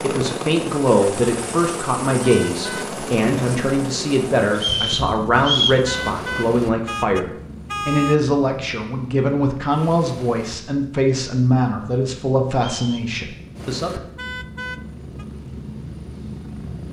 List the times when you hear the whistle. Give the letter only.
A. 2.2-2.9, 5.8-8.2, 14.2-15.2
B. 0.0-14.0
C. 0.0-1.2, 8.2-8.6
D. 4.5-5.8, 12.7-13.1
D.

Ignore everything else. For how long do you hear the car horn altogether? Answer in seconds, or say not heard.
4 s.